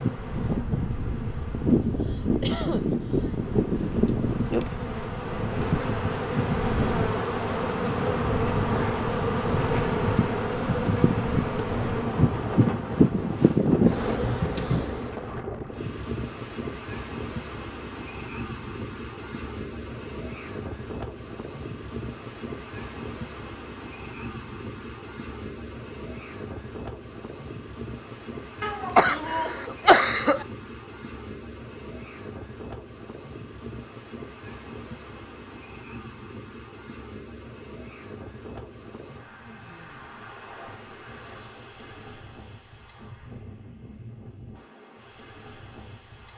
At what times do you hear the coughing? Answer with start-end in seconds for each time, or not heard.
2.0-3.4, 28.6-30.4.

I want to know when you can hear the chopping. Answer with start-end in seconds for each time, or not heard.
not heard.